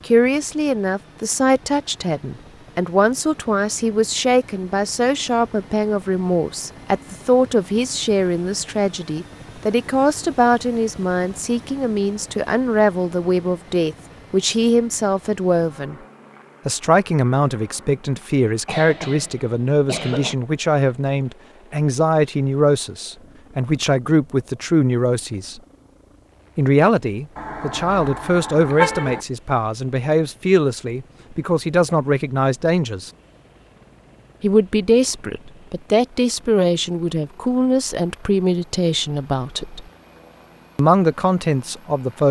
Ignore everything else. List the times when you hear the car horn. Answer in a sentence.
You can hear the car horn from 27.4 to 29.2 s.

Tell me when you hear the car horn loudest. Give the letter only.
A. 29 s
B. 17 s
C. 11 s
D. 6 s
A.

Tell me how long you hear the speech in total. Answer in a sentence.
You can hear the speech for 38 seconds altogether.